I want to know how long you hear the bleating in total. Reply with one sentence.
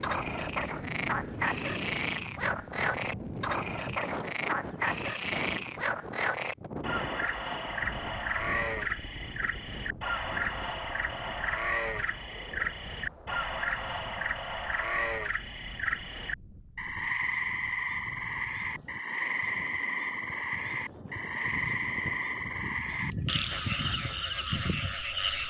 The bleating can be heard for 8 seconds in total.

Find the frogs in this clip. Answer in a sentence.
The frogs can be heard from 0.0 to 25.4 s.